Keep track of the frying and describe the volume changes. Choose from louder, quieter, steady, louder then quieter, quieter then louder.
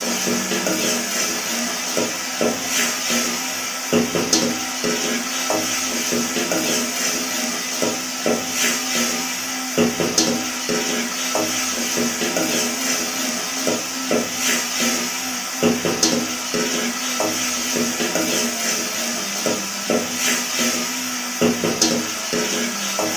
steady.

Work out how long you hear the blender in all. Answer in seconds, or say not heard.
23 s.